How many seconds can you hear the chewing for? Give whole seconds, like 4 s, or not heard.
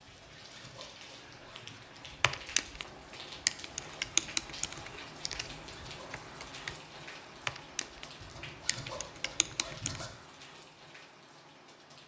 not heard.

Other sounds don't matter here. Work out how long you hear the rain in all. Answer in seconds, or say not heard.
12 s.